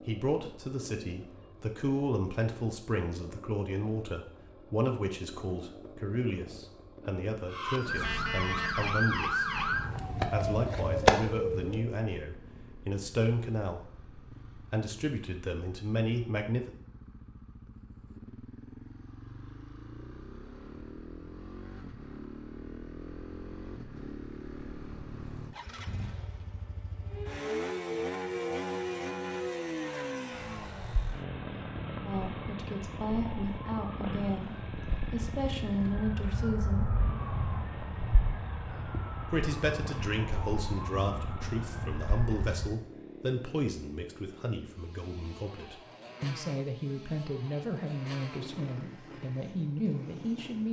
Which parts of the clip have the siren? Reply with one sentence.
The siren can be heard from 7.5 to 11.9 s and from 27.1 to 42.8 s.